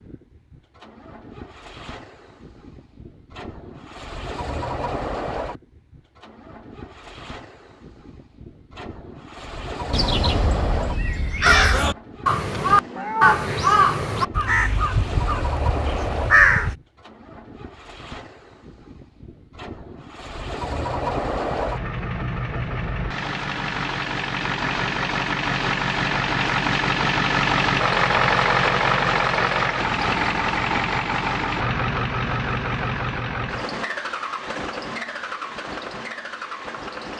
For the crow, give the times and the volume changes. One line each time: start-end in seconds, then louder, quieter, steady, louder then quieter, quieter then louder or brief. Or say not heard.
9.9-16.8 louder then quieter.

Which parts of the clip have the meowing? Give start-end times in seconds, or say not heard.
12.6-13.5.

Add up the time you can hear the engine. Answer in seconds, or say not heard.
37 s.